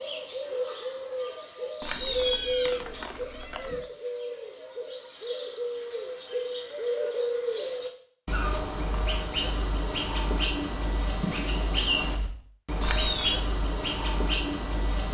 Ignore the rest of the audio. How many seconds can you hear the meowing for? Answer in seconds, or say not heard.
3 s.